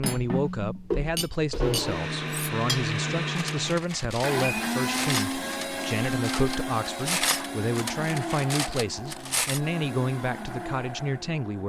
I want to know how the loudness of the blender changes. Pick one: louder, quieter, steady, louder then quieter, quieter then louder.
quieter.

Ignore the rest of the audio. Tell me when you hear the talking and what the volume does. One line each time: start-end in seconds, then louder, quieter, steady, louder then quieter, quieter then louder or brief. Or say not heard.
0.0-11.6 steady.